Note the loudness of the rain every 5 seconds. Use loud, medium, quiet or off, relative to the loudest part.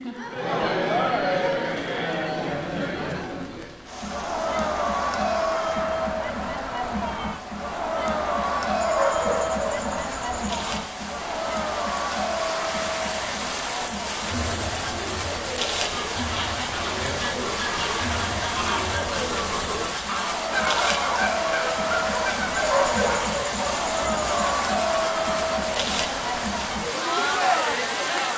quiet, quiet, loud, loud, loud, loud.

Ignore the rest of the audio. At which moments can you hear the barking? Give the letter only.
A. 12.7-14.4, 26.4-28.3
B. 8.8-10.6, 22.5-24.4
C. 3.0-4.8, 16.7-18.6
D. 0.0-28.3
B.